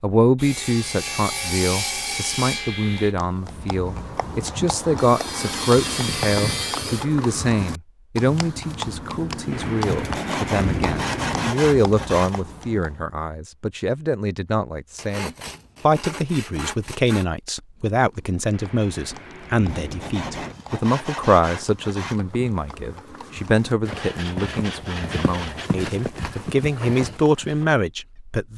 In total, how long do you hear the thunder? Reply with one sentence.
You can hear the thunder for 4 seconds altogether.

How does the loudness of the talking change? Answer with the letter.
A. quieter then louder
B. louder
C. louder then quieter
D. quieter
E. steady
E.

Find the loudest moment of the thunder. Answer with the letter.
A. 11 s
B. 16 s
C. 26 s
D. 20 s
A.